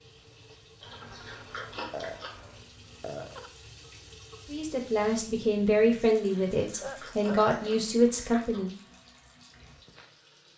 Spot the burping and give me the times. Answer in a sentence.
You can hear the burping from 0.8 to 3.5 s and from 6.8 to 7.5 s.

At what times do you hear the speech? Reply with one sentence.
You can hear the speech from 4.5 to 8.8 s.